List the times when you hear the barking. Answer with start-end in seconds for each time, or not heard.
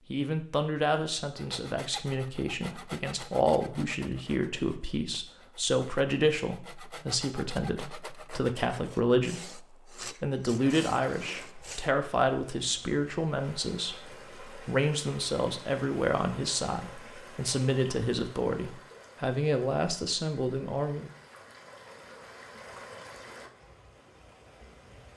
not heard.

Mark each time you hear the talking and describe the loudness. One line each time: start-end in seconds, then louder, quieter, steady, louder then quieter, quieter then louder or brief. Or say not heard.
0.1-21.1 steady.